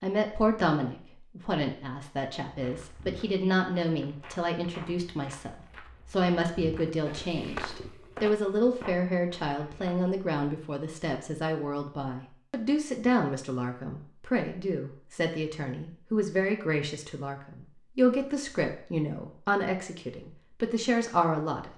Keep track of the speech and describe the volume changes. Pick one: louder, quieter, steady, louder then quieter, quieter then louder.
steady.